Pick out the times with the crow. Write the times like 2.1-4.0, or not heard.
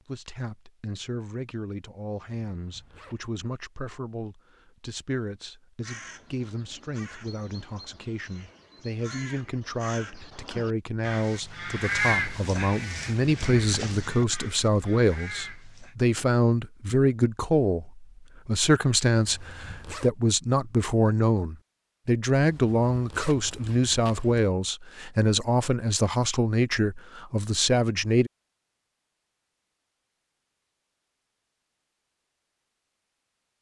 5.8-15.9.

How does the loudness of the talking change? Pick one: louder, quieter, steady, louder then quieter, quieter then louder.
louder.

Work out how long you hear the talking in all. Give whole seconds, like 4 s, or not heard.
28 s.